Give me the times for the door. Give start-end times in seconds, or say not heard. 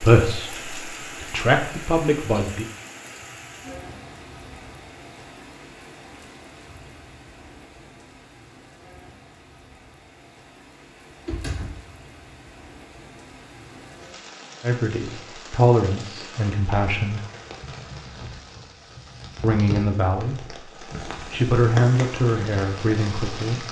11.1-11.7.